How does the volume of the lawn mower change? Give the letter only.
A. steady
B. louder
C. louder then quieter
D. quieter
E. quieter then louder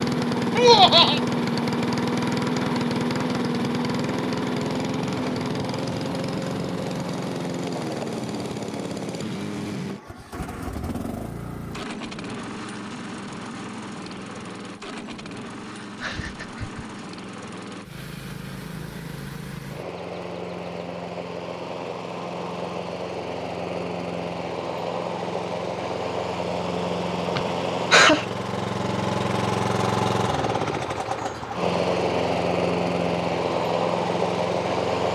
E.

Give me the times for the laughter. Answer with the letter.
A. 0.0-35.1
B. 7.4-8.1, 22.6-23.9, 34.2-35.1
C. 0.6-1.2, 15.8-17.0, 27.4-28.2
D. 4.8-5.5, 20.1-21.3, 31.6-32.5
C.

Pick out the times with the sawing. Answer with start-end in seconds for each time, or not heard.
not heard.